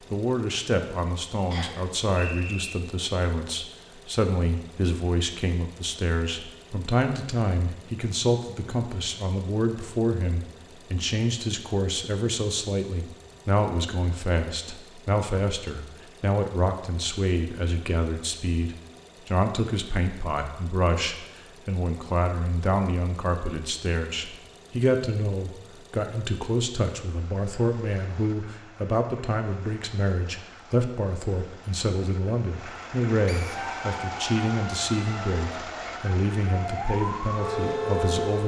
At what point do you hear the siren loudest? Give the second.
38 s.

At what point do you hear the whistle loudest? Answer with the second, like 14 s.
2 s.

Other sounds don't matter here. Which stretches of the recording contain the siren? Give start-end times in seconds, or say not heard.
33.5-38.4.